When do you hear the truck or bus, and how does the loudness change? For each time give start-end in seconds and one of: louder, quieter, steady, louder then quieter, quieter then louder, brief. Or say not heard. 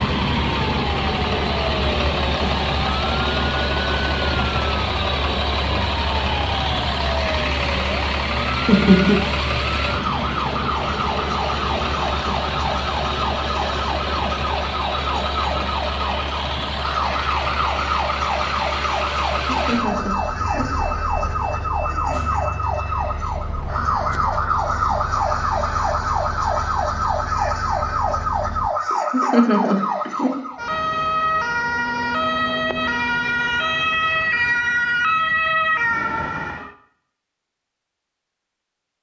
0.0-28.7 quieter.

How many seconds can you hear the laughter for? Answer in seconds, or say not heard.
3 s.